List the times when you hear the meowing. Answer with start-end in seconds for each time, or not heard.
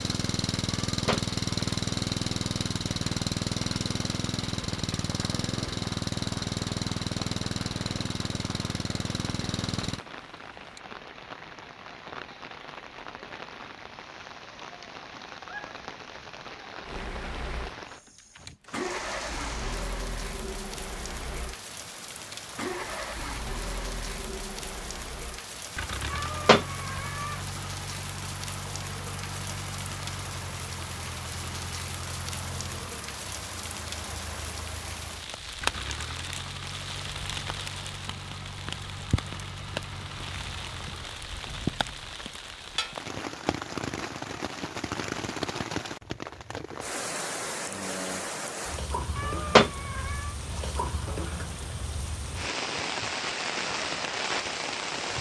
0.8-1.2, 26.1-27.4, 49.1-50.3.